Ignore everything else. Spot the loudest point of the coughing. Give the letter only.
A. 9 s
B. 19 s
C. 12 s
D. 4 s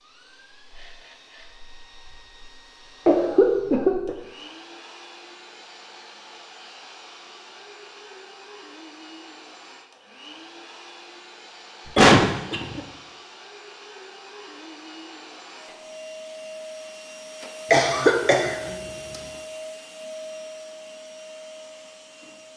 C.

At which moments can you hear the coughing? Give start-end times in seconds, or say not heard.
3.0-4.2, 11.8-12.8, 17.7-19.2.